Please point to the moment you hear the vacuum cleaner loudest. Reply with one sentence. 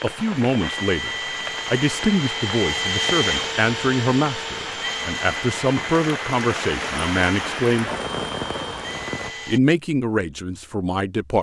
The loudest moment of the vacuum cleaner is at 3 seconds.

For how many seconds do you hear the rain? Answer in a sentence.
You can hear the rain for 9 seconds altogether.